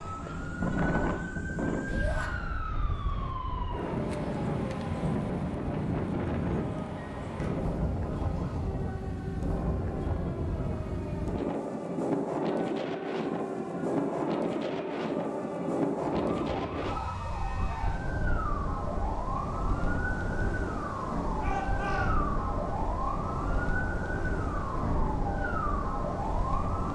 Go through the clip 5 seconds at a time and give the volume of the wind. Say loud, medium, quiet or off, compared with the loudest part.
loud, loud, loud, loud, medium, medium.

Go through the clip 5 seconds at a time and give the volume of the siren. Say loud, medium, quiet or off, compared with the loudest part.
medium, medium, medium, loud, loud, loud.